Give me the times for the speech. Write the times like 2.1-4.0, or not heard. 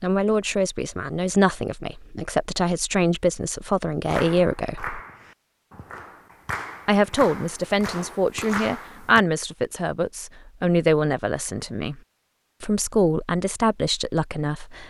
0.0-5.0, 6.8-12.0, 12.6-14.8.